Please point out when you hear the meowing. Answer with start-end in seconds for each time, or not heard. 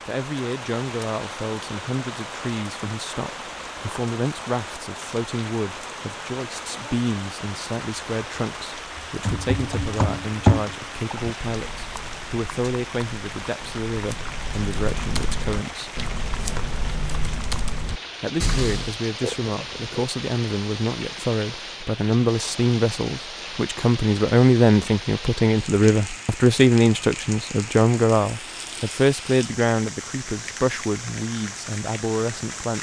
not heard.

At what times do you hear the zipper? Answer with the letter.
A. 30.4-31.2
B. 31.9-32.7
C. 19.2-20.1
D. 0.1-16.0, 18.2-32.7
C.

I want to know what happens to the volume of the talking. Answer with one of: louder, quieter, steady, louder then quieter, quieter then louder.
louder.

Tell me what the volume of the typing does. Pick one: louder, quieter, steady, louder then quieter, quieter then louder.
quieter then louder.